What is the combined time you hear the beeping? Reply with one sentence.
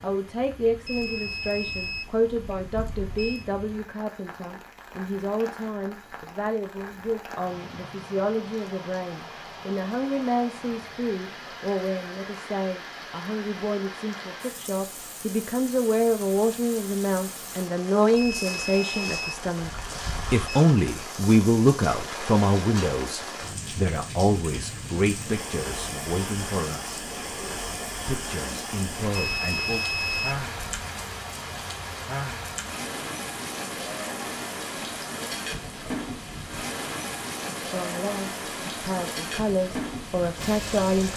You can hear the beeping for 7 seconds altogether.